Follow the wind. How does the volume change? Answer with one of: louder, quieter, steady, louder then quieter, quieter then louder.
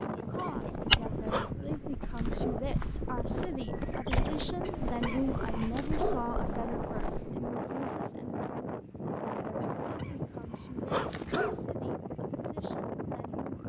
steady.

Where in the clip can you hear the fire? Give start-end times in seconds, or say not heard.
not heard.